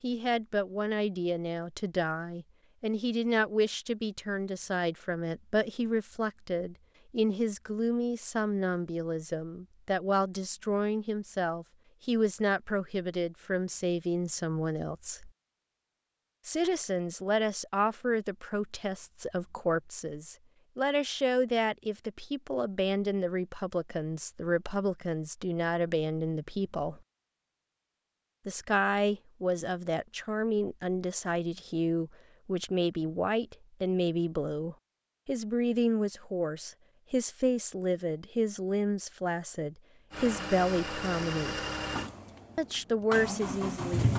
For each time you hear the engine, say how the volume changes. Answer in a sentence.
The engine can be heard from 40.1 to 44.1 s, getting quieter then louder.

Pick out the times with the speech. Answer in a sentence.
You can hear the speech from 0.0 to 15.3 s, from 16.4 to 27.0 s, from 28.4 to 41.6 s and from 42.5 to 44.1 s.